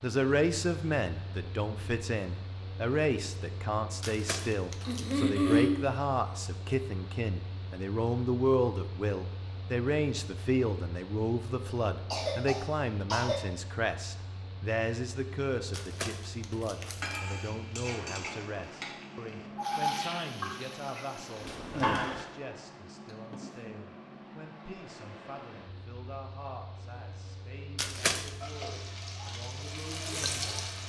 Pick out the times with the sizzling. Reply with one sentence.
You can hear the sizzling from 16.8 to 22.2 s and from 28.4 to 30.8 s.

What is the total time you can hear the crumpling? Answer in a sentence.
You can hear the crumpling for 3 seconds altogether.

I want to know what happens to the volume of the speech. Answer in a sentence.
The volume of the speech goes down.